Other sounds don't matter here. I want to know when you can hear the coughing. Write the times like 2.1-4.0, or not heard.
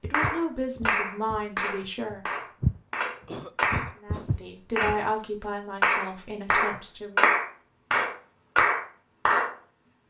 3.2-4.3.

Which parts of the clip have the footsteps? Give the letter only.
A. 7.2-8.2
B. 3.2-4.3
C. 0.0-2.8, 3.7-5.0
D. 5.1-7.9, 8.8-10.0
C.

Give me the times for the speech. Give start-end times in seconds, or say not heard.
0.0-2.2, 4.0-7.2.